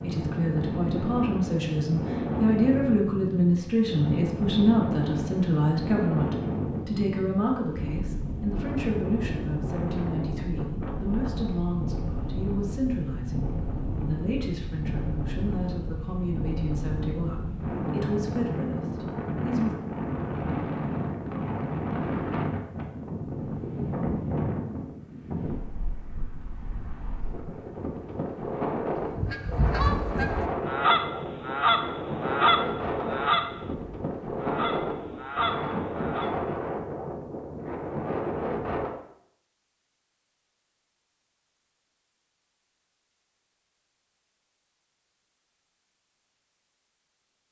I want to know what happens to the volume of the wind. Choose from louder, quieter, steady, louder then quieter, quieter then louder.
steady.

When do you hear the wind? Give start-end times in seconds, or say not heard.
0.0-39.0.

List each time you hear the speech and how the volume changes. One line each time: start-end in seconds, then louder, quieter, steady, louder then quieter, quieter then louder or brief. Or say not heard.
0.0-19.8 quieter.